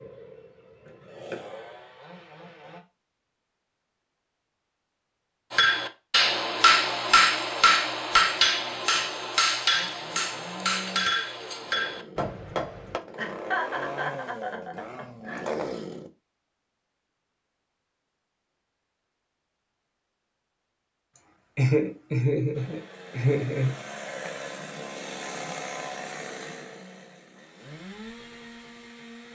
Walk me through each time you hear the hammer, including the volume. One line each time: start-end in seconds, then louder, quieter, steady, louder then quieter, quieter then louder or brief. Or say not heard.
5.5-13.0 quieter.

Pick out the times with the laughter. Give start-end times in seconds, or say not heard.
0.8-1.4, 13.2-15.5, 21.6-23.8.